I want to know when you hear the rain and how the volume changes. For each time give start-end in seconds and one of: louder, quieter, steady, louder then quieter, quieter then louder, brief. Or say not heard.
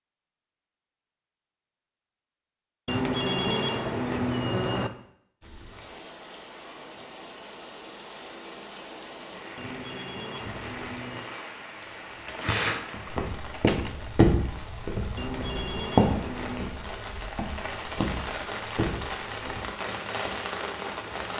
5.4-21.3 louder.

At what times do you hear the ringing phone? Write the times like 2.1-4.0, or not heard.
2.9-4.9, 9.6-11.2, 15.2-16.8.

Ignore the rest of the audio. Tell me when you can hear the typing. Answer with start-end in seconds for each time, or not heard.
12.2-13.9.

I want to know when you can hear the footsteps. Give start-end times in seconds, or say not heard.
13.1-19.6.